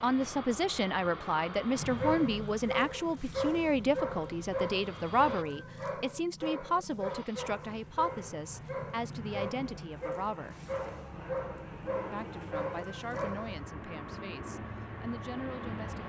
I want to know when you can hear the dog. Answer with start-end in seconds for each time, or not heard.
1.8-13.7.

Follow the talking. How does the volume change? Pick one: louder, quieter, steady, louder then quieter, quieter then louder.
quieter.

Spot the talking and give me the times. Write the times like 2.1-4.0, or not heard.
0.0-10.6, 12.1-16.0.